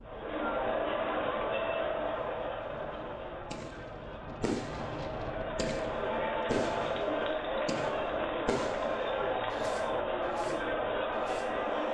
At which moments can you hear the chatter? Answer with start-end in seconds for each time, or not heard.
0.0-11.8.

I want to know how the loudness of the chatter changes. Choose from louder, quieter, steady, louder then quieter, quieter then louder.
quieter then louder.